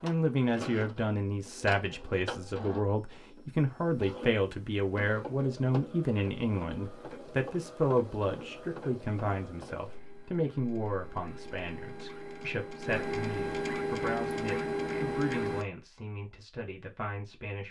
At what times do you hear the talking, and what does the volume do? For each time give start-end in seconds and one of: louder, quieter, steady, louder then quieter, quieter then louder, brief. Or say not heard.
0.0-17.6 quieter.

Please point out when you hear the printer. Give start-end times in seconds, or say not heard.
0.0-15.7.